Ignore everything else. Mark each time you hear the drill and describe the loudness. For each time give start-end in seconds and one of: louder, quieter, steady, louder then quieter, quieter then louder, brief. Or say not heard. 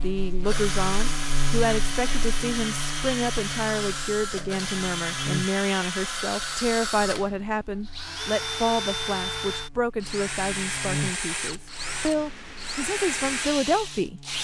0.0-14.3 steady.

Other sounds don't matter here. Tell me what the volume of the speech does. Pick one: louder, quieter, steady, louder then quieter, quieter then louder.
steady.